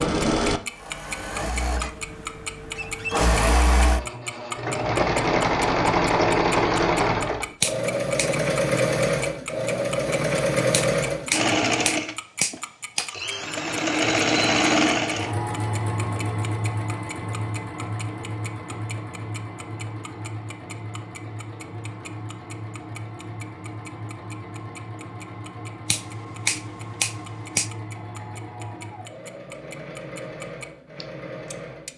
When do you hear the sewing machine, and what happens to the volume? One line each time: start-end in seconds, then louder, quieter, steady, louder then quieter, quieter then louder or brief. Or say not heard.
0.0-31.9 quieter.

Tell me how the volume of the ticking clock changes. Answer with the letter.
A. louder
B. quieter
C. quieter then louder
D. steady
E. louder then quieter
B.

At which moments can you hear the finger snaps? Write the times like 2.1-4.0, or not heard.
7.6-8.3, 10.7-13.1, 25.9-27.7.